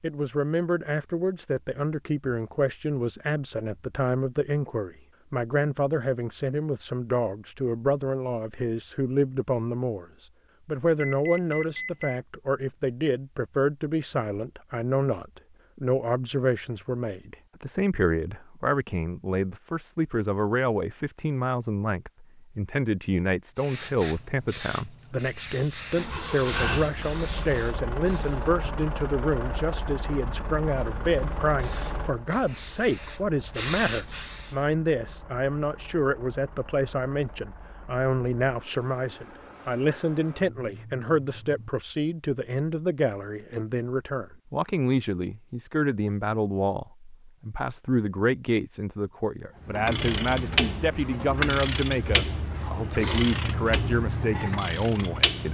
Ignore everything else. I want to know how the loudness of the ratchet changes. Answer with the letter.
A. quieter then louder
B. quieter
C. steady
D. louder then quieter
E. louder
B.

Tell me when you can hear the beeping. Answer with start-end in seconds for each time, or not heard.
11.0-12.2.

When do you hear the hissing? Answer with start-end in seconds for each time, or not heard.
23.6-28.5, 31.1-34.7.